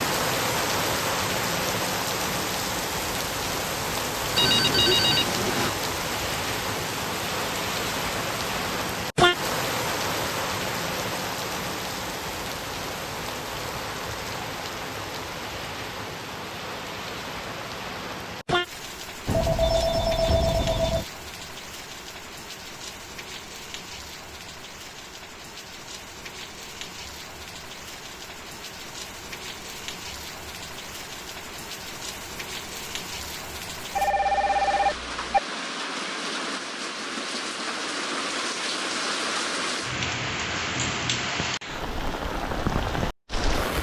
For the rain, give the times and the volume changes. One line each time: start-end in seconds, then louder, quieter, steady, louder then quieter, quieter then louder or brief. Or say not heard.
0.0-43.7 quieter then louder.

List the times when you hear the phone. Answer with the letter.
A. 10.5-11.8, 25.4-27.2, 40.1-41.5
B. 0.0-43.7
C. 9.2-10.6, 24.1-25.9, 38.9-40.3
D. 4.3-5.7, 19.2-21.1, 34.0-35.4
D.